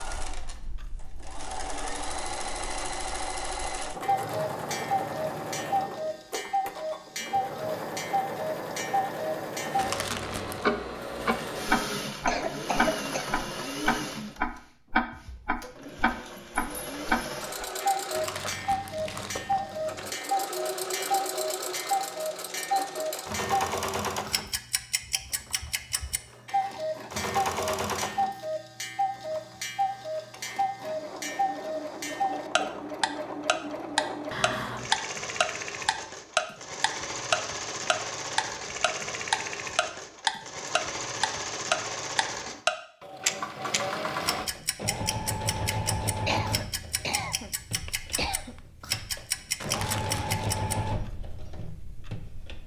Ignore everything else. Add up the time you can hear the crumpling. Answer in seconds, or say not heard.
4 s.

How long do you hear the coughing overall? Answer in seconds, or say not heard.
3 s.